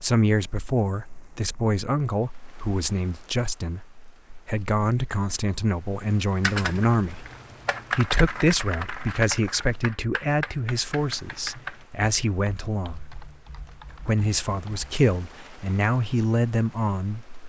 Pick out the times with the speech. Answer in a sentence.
The speech can be heard from 0.0 to 7.2 s, from 8.0 to 13.0 s and from 14.1 to 17.4 s.